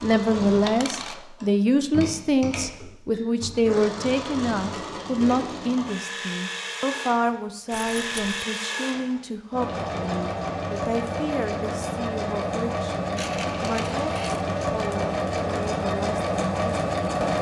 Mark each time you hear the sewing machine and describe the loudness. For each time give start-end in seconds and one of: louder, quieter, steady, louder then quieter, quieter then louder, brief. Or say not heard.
0.0-17.3 louder.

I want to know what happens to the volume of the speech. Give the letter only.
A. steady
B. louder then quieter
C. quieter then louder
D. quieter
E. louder
D.